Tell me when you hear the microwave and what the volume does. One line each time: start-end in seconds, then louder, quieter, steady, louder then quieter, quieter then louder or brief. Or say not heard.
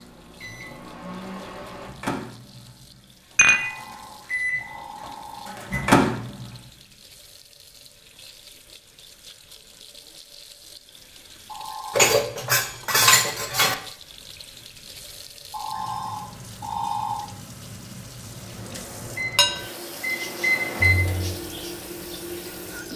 0.0-6.7 louder
18.4-22.9 louder then quieter.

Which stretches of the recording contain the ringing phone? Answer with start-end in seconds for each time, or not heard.
3.5-5.5, 11.4-12.1, 15.5-17.2.